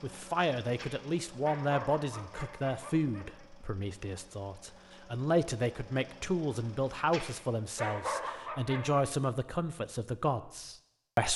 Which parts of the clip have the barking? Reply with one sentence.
The barking can be heard from 0.8 to 3.5 s and from 7.1 to 9.0 s.